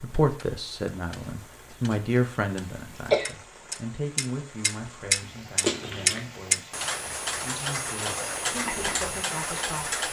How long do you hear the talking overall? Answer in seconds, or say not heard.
10 s.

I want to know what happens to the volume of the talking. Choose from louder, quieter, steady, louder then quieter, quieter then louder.
quieter.